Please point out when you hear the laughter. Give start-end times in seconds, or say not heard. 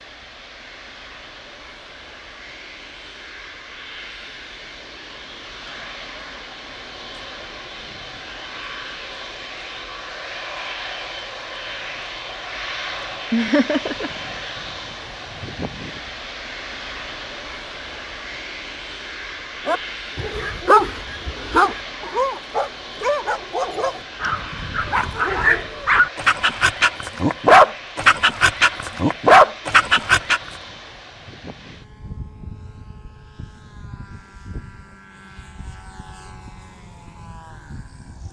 13.3-14.5.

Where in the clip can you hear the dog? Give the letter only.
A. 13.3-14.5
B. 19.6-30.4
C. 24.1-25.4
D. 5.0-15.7
B.